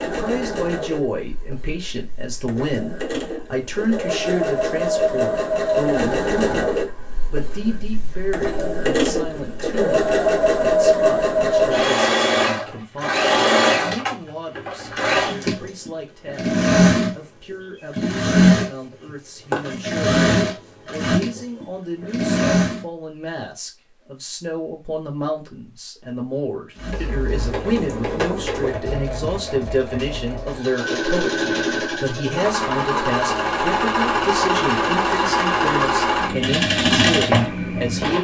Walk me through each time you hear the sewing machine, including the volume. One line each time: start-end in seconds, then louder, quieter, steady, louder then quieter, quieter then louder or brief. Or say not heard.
0.0-22.9 louder
26.8-38.1 louder.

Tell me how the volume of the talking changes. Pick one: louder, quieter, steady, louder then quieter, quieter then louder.
quieter then louder.